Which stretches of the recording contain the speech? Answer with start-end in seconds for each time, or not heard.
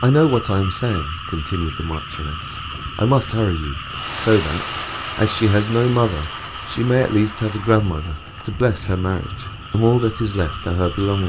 0.0-11.2.